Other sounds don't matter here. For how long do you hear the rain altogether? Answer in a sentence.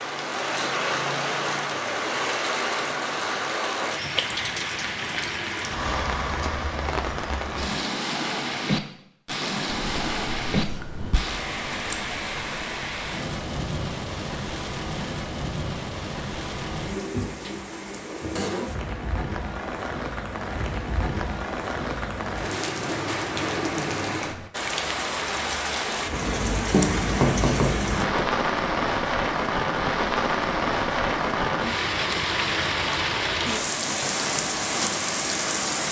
The rain can be heard for 36 seconds in total.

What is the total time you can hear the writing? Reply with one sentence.
The writing can be heard for 3 seconds in total.